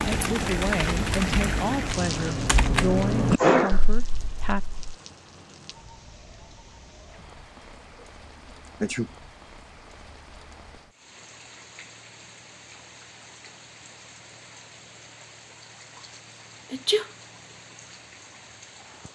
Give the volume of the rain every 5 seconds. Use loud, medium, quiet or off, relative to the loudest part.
loud, quiet, quiet, quiet.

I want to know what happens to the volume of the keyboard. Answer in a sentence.
The loudness of the keyboard goes up.